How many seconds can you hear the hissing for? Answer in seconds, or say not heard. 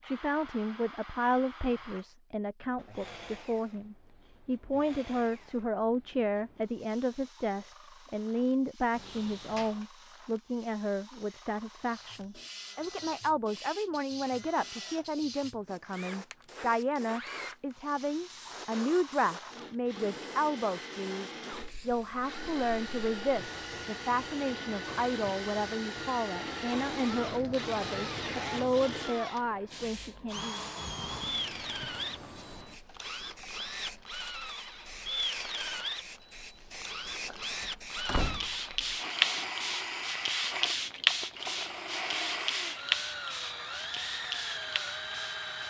34 s.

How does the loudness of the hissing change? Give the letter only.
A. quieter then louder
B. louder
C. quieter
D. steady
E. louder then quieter
B.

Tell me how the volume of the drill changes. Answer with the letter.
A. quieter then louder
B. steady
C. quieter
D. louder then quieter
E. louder
E.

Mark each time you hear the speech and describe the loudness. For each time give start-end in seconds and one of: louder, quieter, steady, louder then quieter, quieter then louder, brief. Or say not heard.
0.0-30.6 steady.